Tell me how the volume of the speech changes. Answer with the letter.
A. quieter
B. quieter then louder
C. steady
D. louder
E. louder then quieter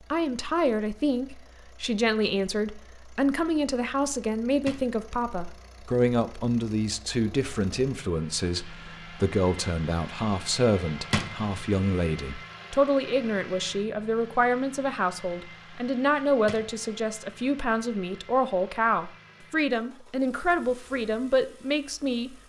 C.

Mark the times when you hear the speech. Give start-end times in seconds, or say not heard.
0.1-22.4.